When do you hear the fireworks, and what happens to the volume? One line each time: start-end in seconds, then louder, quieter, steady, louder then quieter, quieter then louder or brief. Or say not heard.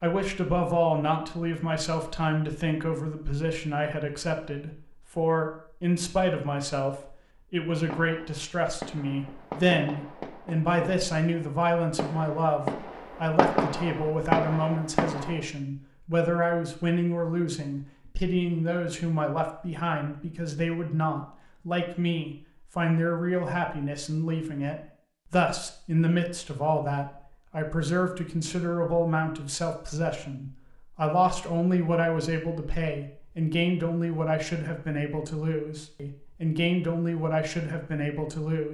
7.8-15.3 louder.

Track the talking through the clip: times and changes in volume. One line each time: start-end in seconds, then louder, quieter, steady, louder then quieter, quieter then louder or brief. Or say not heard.
0.0-38.6 steady.